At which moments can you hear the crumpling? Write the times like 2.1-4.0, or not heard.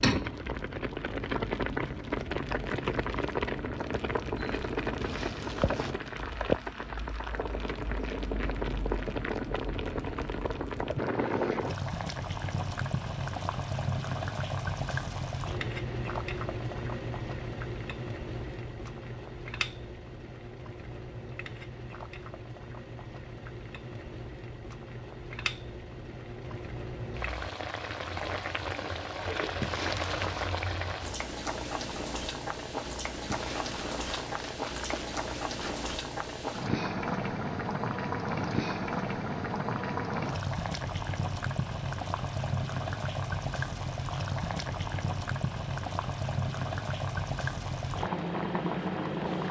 5.0-6.0, 29.6-30.5, 33.2-35.9.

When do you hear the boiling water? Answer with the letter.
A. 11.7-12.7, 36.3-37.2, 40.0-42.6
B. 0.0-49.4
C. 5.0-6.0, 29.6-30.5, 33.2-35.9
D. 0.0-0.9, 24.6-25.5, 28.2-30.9
B.